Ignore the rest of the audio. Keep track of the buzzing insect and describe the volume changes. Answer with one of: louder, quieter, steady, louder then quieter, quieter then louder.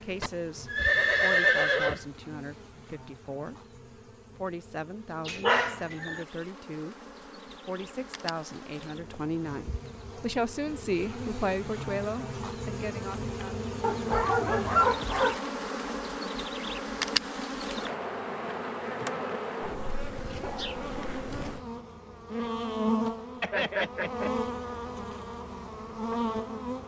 louder.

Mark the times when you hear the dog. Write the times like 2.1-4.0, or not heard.
5.2-6.2, 13.8-15.4, 19.6-21.1.